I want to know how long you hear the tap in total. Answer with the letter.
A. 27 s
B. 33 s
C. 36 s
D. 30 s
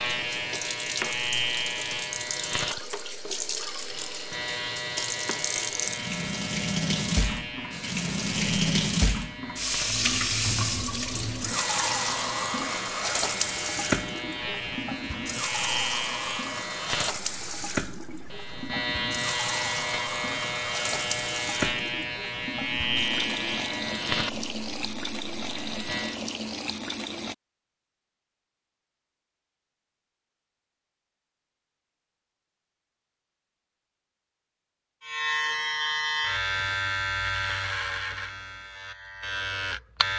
A.